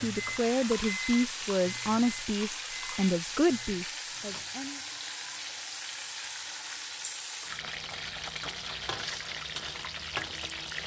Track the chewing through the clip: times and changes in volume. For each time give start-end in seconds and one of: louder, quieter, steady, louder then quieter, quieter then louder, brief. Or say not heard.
not heard.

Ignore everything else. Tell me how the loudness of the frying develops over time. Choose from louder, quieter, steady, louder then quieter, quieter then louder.
steady.